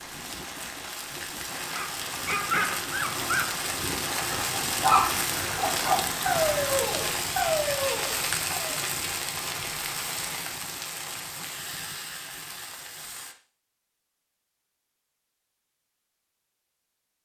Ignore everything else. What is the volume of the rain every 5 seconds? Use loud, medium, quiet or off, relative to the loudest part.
loud, loud, medium, off.